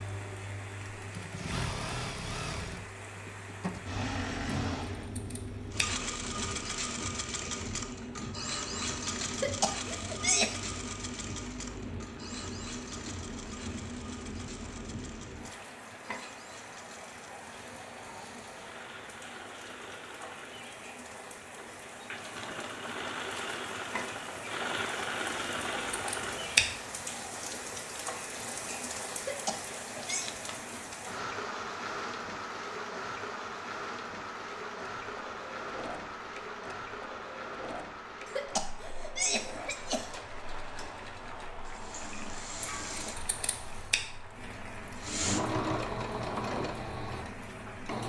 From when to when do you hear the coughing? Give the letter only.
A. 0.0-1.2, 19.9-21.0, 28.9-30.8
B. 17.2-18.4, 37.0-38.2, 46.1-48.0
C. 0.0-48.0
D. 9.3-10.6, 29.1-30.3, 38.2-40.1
D.